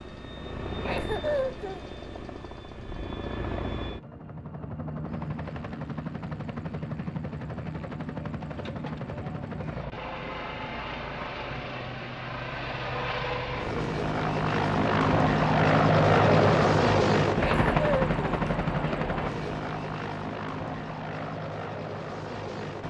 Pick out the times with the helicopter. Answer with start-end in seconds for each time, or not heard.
0.0-22.8.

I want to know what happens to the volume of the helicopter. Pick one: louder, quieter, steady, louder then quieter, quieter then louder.
louder then quieter.